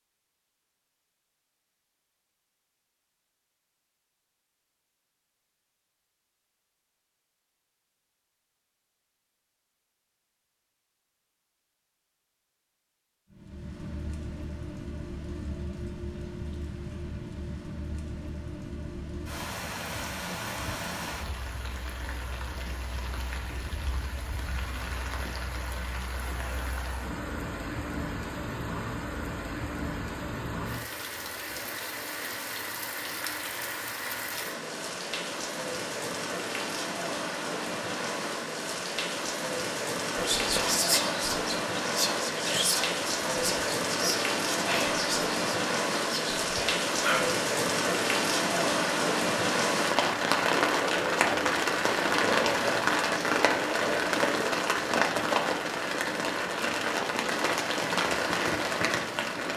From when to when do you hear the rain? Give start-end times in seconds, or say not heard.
13.3-59.5.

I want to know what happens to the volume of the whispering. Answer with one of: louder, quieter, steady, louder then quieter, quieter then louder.
quieter.